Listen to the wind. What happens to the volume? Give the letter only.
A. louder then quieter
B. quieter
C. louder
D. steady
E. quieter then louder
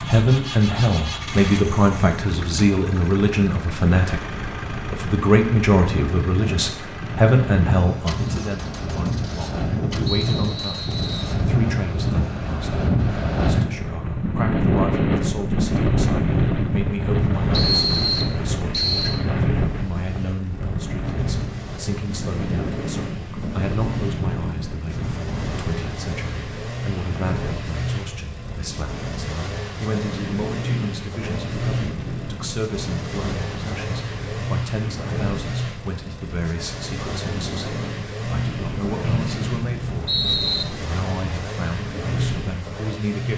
A.